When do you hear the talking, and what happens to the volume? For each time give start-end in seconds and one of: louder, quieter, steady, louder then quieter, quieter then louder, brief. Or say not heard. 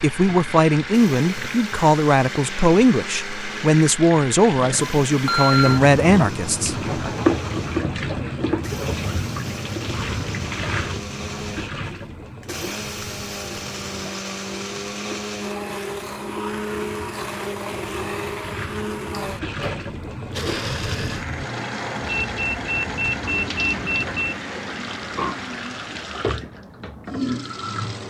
0.0-6.8 steady.